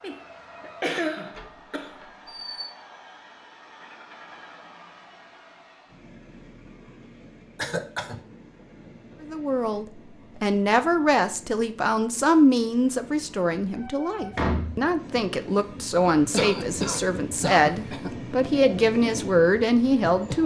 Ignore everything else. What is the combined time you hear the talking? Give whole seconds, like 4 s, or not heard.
11 s.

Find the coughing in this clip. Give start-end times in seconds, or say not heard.
0.0-1.9, 7.5-8.2, 16.3-18.1.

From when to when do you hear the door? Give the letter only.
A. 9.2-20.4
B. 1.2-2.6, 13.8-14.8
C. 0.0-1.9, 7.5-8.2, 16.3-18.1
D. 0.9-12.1
B.